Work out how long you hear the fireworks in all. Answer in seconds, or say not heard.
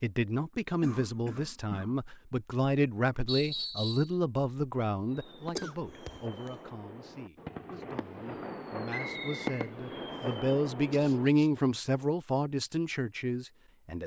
6 s.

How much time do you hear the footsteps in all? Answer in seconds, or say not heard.
not heard.